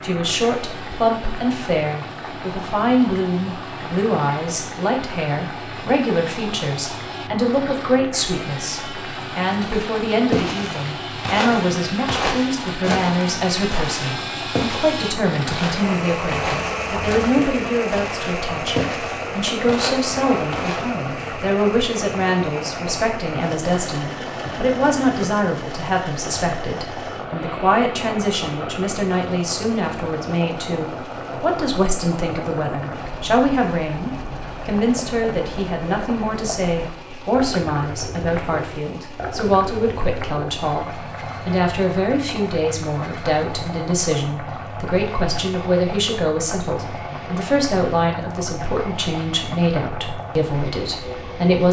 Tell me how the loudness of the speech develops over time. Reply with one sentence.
The volume of the speech stays about the same.